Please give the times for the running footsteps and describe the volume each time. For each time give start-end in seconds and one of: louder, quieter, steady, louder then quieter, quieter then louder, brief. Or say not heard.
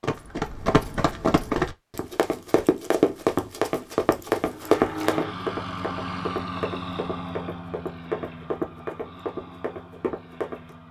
0.0-10.8 quieter.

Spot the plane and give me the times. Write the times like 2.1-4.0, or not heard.
4.5-10.8.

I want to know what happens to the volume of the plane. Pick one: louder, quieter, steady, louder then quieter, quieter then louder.
quieter.